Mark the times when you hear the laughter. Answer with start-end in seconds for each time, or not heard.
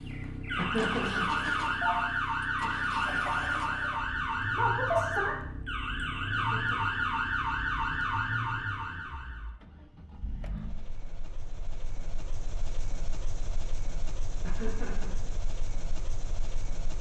0.6-1.4, 6.3-7.2, 14.4-15.3.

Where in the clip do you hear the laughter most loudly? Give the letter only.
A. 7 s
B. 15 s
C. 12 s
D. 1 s
D.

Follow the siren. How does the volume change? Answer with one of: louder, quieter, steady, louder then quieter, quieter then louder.
steady.